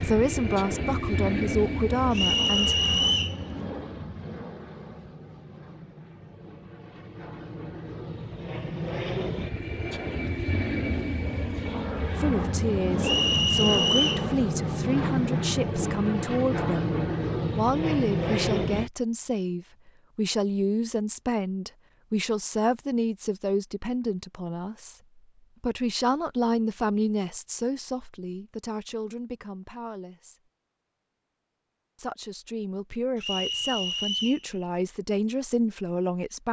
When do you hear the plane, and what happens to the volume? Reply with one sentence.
The plane can be heard from 0.0 to 18.9 s, getting quieter then louder.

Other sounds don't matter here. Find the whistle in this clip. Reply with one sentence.
The whistle can be heard from 2.1 to 3.4 s, from 13.0 to 14.2 s and from 33.2 to 34.5 s.